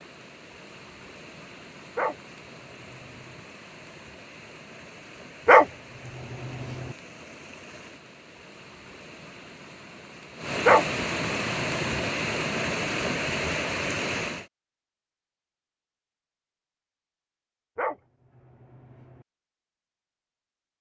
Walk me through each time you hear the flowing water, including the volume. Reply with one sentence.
The flowing water can be heard from 0.0 to 14.5 s, getting louder.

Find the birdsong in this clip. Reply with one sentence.
You can't hear the birdsong here.